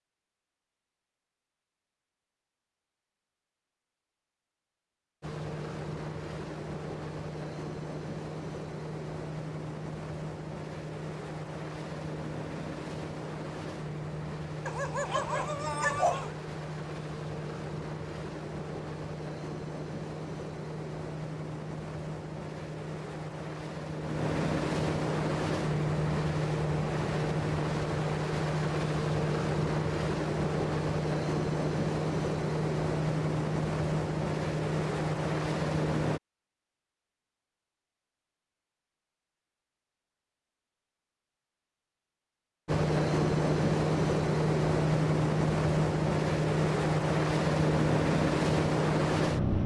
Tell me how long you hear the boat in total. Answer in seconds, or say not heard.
38 s.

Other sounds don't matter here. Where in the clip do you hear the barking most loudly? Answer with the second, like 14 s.
16 s.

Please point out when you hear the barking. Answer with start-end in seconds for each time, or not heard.
14.7-16.4.